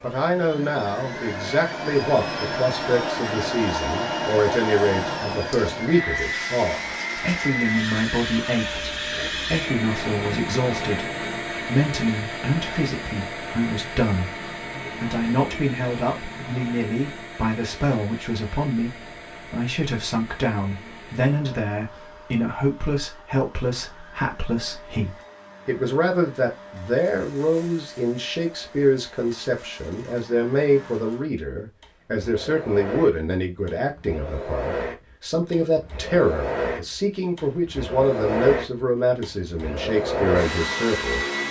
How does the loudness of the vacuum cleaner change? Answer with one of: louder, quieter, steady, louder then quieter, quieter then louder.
quieter then louder.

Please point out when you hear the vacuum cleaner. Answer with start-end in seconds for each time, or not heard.
0.0-41.4.